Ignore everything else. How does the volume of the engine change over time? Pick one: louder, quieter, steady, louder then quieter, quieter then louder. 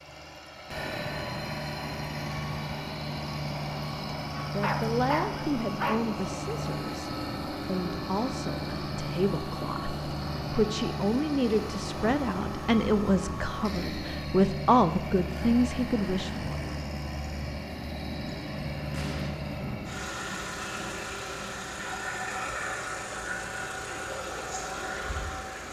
steady.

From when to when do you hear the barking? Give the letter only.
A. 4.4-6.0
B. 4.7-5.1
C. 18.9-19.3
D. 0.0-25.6
A.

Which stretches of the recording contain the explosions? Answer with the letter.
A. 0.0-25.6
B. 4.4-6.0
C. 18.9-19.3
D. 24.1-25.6
C.